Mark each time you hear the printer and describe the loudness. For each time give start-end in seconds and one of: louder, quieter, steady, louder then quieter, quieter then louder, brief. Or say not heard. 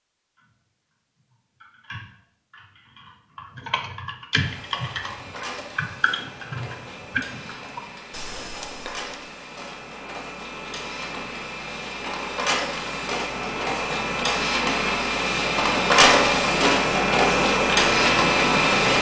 4.3-18.9 louder.